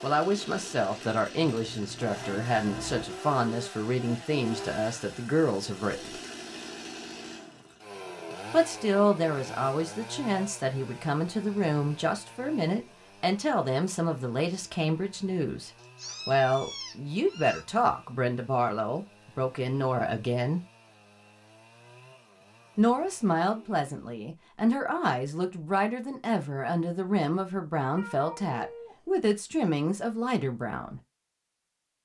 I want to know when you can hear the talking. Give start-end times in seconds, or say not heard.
0.0-6.2, 8.5-20.6, 22.8-31.0.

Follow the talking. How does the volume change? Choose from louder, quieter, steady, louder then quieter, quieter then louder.
steady.